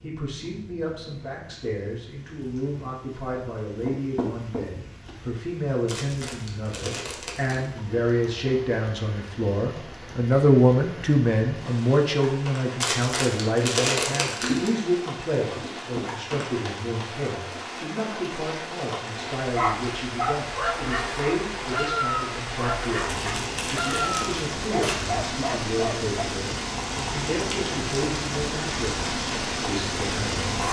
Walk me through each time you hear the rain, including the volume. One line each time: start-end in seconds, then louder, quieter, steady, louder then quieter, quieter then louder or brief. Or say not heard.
0.0-30.6 louder.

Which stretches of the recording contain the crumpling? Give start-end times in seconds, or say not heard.
5.8-7.7, 12.8-14.7, 23.1-25.0.